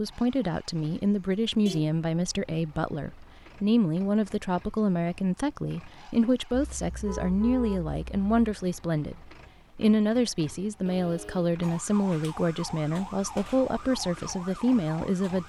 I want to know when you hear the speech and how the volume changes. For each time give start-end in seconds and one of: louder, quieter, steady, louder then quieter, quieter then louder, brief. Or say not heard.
0.0-15.4 steady.